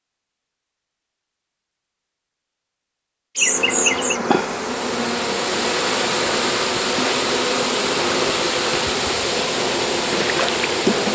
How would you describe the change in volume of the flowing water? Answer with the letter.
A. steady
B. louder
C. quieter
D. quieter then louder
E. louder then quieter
A.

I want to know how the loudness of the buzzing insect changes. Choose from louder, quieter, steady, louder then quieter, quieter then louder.
steady.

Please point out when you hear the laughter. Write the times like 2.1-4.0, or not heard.
3.4-4.2.